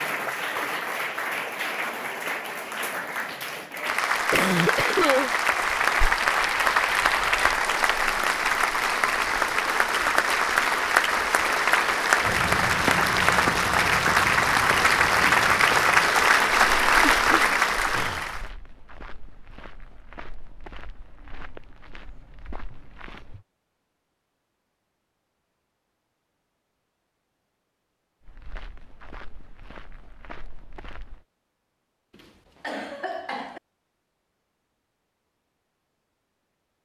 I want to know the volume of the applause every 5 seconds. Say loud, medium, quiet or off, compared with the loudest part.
medium, loud, loud, loud, off, off, off, off.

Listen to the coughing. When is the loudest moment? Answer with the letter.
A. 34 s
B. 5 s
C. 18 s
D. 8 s
B.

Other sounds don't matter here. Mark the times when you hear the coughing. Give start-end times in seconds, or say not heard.
3.9-5.3, 17.1-18.2, 32.6-33.6.